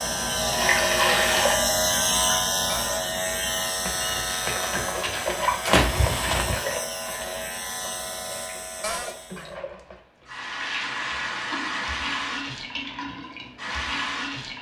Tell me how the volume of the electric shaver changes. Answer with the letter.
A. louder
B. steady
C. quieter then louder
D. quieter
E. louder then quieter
D.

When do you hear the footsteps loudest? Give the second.
6 s.